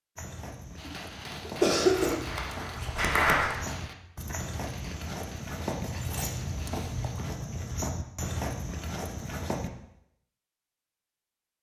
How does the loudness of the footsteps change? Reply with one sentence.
The loudness of the footsteps goes up.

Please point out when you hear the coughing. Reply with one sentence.
You can hear the coughing from 0.8 to 2.2 s.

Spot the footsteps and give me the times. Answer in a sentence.
You can hear the footsteps from 0.1 to 9.7 s.